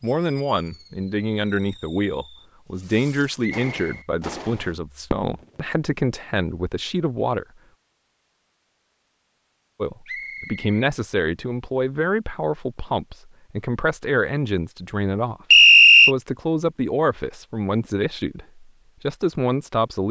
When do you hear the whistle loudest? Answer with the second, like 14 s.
16 s.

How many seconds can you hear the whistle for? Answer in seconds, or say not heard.
2 s.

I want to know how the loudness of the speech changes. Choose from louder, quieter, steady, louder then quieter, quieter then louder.
steady.